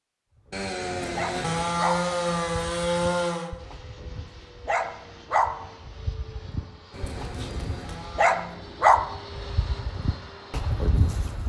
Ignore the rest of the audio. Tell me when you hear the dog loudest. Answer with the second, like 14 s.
9 s.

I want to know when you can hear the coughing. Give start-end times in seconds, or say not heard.
0.9-1.9, 6.9-8.1.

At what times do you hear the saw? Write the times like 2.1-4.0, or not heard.
0.5-3.5, 6.9-8.6.